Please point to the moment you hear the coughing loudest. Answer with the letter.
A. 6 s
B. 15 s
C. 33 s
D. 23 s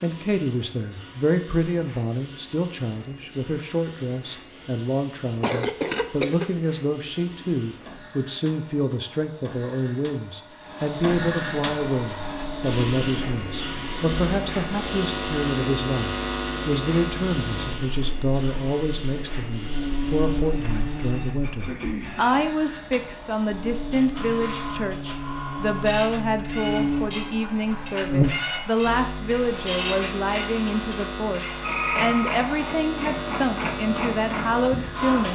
A.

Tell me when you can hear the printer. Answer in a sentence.
You can hear the printer from 0.0 to 35.2 s.